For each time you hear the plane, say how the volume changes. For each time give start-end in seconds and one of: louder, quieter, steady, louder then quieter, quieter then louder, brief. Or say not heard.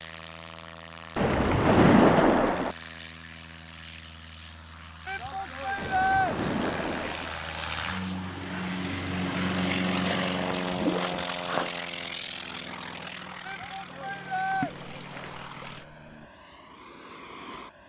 0.0-17.8 louder then quieter.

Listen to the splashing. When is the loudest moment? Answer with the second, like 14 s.
2 s.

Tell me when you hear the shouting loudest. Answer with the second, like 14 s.
6 s.